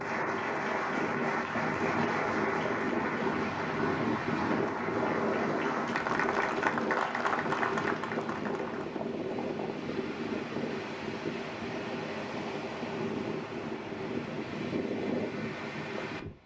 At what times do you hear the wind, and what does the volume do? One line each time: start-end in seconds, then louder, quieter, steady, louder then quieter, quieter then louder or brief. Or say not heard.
0.0-16.4 steady.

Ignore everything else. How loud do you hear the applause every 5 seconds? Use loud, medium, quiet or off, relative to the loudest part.
loud, loud, off, off.